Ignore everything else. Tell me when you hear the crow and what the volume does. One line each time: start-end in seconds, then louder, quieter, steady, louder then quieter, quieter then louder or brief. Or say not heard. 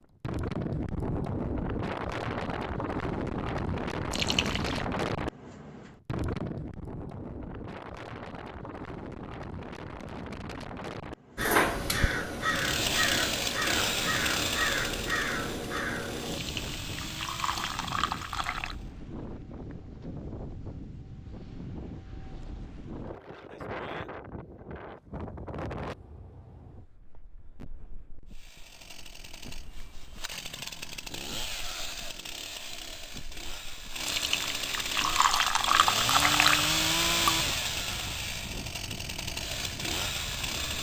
11.3-16.4 steady.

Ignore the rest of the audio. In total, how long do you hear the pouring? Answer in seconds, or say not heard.
6 s.